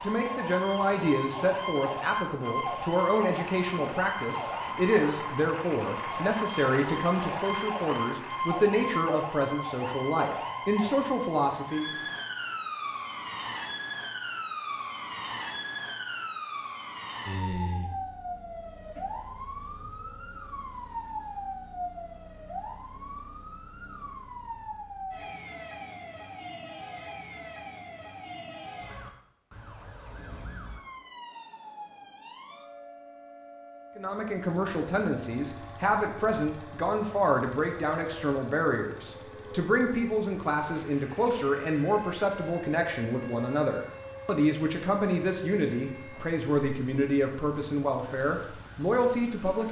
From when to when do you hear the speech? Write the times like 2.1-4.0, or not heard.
0.0-11.9, 34.0-49.6.